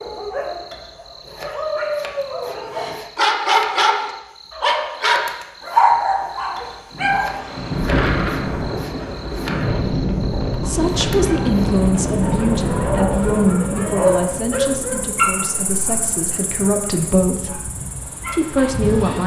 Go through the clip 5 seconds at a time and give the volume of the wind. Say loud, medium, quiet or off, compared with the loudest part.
off, loud, loud, medium.